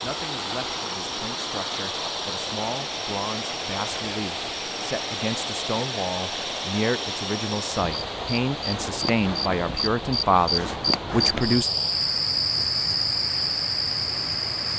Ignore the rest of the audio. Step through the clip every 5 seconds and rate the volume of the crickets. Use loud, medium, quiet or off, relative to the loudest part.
quiet, medium, loud.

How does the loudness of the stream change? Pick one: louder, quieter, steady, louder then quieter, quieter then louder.
quieter.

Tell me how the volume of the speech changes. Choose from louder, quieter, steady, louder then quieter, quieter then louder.
louder.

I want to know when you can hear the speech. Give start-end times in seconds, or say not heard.
0.0-11.7.